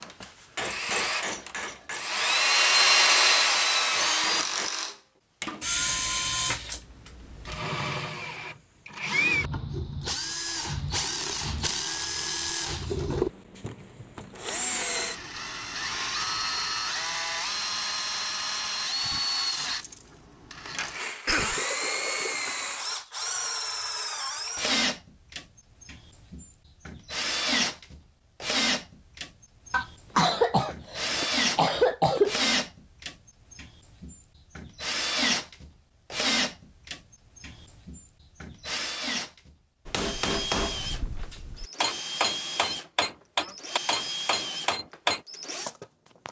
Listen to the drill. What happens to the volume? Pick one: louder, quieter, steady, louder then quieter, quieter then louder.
quieter.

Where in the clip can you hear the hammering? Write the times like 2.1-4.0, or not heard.
0.0-4.7, 39.9-45.2.